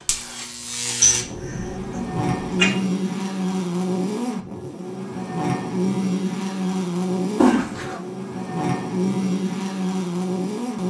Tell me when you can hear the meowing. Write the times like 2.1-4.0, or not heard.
7.4-8.0.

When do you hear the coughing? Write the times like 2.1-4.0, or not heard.
1.0-2.8.